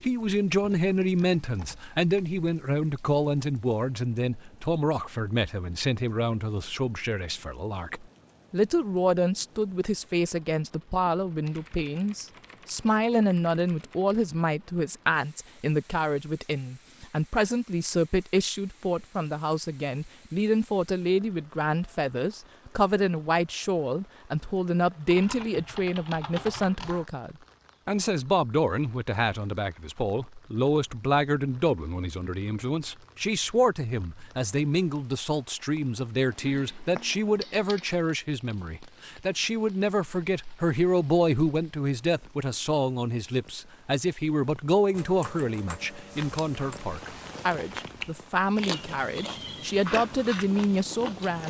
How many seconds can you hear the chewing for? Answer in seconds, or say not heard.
5 s.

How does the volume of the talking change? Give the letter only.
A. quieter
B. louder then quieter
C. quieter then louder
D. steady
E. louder
D.